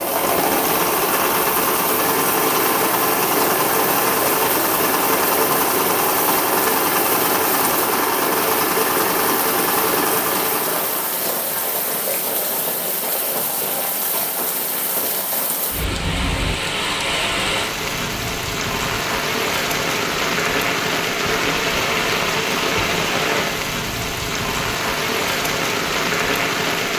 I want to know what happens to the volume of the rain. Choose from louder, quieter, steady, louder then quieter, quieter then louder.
louder.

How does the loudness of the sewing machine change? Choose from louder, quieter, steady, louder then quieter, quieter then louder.
steady.